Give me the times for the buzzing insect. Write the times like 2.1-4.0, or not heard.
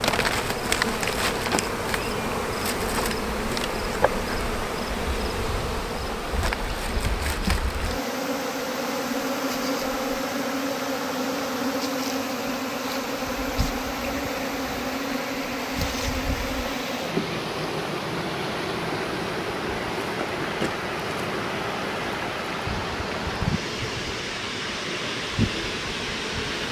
0.0-26.6.